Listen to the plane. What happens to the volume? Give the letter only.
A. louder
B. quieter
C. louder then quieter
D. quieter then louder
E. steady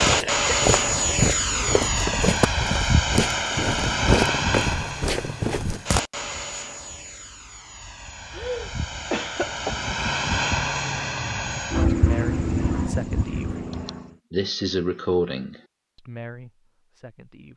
D.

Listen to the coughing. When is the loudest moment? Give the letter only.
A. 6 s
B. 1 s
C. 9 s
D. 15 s
D.